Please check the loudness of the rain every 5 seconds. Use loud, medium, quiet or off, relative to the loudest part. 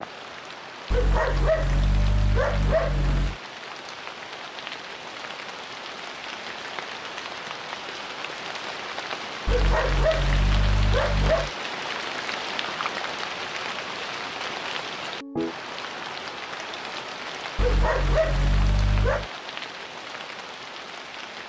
medium, loud, loud, loud, medium.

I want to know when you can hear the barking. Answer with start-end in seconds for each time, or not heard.
0.9-3.4, 9.4-11.5, 17.6-19.2.